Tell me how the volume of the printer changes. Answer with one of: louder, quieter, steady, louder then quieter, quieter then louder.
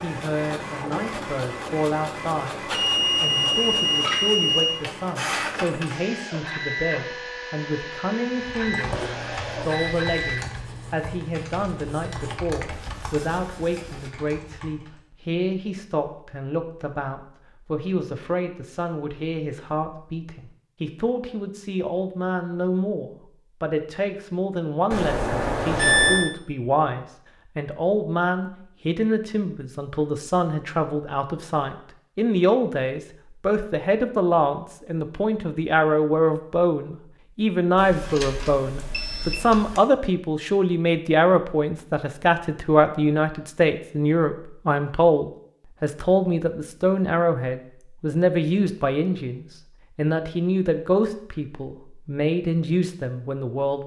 steady.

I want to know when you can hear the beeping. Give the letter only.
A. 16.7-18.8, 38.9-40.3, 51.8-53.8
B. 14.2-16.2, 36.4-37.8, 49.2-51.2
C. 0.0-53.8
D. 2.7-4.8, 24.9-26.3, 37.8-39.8
D.